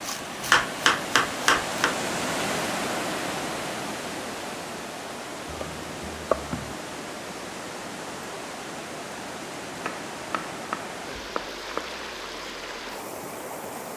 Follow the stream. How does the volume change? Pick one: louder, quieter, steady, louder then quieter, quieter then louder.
quieter.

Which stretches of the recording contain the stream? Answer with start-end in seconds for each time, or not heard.
0.0-13.9.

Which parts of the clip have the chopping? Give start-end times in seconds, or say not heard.
0.0-2.0, 5.5-6.8, 9.8-12.0.